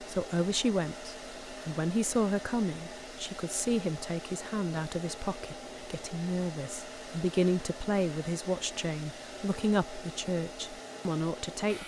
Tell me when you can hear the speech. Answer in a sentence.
The speech can be heard from 0.0 to 11.8 s.